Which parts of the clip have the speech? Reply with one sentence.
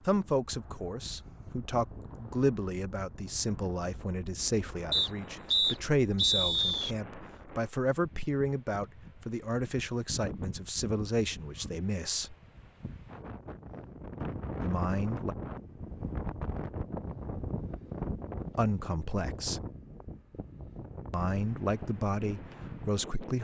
You can hear the speech from 0.1 to 12.3 s, from 14.6 to 15.3 s, from 18.6 to 19.6 s and from 21.1 to 23.3 s.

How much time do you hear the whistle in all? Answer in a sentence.
You can hear the whistle for 2 seconds altogether.